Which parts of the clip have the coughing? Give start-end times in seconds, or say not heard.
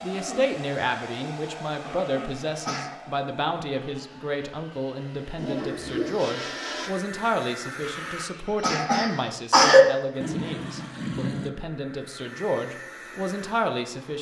2.0-3.0, 7.8-9.8.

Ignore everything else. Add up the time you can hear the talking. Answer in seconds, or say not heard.
14 s.